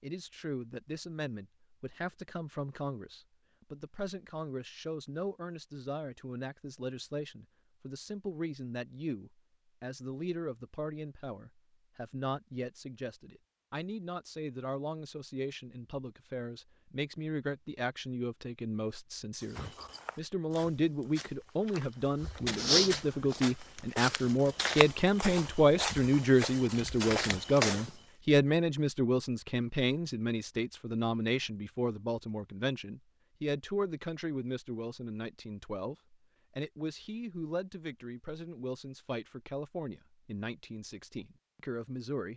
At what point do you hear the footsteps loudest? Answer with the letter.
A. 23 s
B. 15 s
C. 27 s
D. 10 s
A.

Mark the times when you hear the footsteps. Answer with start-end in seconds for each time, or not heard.
19.4-27.9.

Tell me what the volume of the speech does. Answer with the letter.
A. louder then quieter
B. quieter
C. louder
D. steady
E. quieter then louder
A.